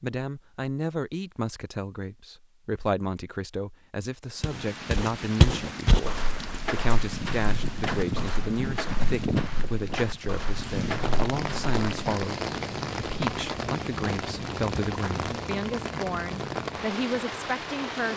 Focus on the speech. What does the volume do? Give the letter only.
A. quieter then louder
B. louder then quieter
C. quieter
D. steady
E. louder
D.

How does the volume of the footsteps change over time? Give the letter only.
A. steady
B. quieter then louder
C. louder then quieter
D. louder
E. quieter
E.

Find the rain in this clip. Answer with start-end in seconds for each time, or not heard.
4.3-18.1.